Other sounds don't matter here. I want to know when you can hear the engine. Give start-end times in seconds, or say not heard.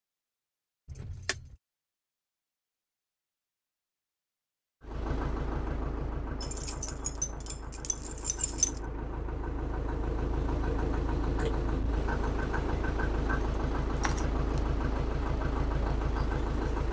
4.8-16.8.